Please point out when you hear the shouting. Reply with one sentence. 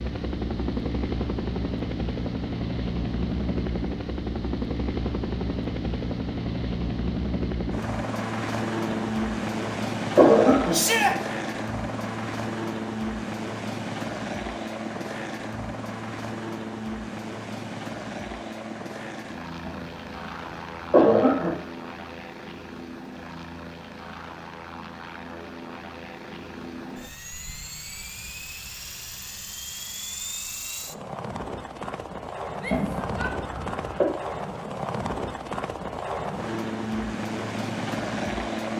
You can hear the shouting from 10.7 to 11.2 s and from 32.5 to 33.4 s.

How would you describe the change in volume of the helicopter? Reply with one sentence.
The loudness of the helicopter goes down, then up.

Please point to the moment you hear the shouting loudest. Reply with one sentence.
The loudest moment of the shouting is at 11 seconds.